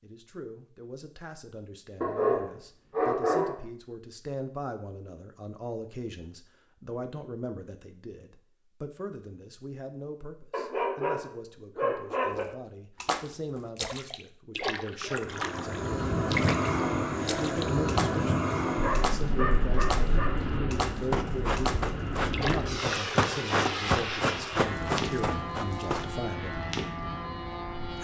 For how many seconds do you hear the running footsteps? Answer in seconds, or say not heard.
5 s.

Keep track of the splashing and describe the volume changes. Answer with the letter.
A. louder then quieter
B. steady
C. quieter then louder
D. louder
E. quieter
B.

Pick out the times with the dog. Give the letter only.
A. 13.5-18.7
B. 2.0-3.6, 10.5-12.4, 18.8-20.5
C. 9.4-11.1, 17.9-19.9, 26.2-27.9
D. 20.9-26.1
B.